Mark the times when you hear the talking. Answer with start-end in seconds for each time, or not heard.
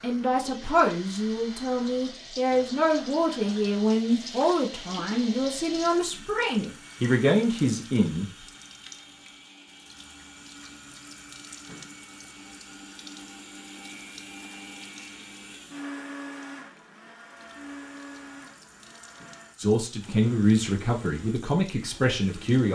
0.0-8.3, 19.6-22.7.